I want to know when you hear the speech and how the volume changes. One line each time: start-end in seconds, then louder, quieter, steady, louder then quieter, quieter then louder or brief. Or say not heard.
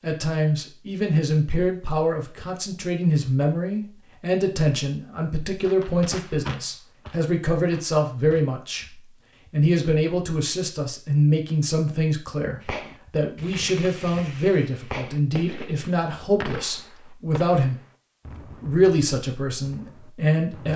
0.0-17.8 steady
18.6-20.7 brief.